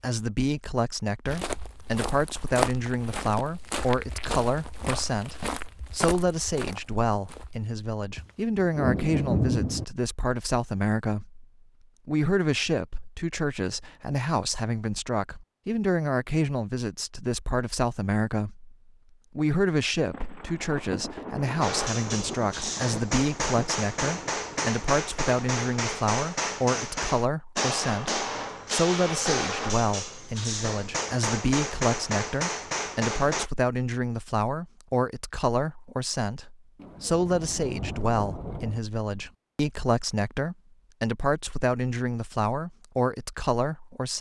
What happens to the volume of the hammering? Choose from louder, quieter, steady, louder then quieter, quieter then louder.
steady.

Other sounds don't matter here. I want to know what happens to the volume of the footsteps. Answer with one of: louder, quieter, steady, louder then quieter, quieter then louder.
quieter.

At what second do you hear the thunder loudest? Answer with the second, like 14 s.
9 s.